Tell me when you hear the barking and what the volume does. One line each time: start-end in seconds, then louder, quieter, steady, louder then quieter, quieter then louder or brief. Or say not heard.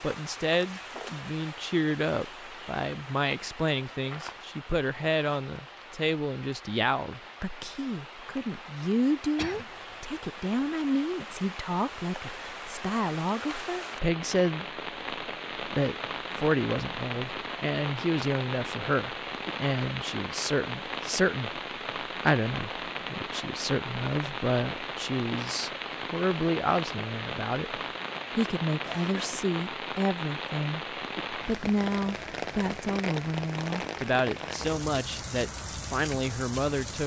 not heard.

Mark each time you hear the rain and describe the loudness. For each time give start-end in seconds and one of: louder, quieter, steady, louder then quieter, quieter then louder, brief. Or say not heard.
0.0-37.0 louder.